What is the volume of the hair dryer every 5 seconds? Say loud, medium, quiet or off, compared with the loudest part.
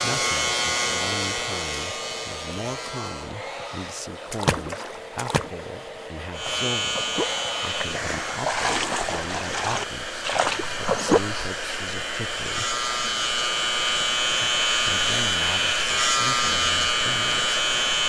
medium, medium, loud, loud.